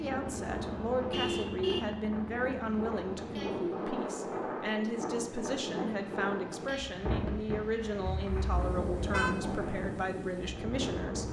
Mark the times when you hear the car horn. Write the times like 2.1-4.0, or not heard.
0.2-1.9, 8.1-9.6.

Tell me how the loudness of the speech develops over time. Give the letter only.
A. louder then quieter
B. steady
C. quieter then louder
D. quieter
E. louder
B.